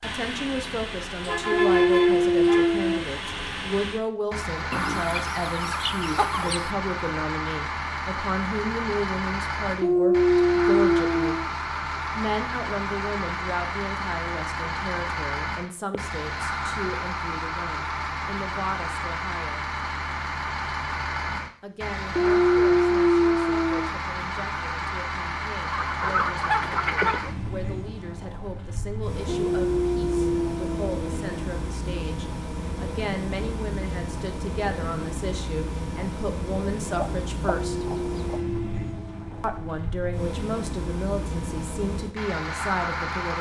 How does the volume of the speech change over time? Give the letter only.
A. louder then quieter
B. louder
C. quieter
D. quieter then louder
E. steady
D.